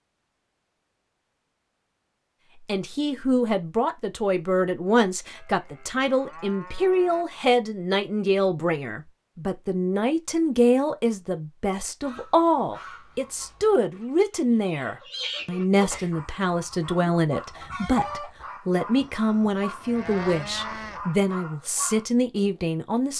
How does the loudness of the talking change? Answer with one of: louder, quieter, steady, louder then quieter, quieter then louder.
steady.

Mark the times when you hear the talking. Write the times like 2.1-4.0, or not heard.
2.6-23.1.